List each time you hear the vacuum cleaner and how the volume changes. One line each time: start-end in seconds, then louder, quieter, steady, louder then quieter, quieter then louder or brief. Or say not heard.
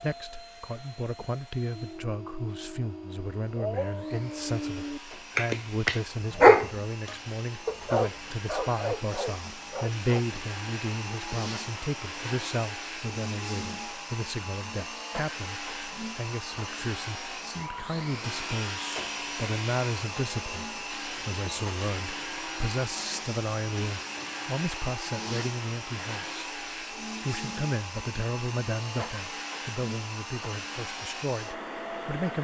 0.0-32.3 louder.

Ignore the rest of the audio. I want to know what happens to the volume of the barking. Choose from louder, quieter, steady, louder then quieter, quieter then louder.
louder then quieter.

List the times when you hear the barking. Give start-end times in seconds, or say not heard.
1.7-10.2.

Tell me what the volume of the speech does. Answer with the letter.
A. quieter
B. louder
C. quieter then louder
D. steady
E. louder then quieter
D.